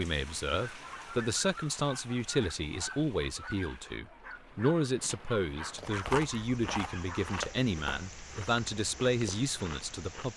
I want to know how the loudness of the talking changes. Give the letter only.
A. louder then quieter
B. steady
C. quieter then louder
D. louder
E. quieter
B.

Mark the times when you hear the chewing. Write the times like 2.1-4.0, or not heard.
5.8-10.3.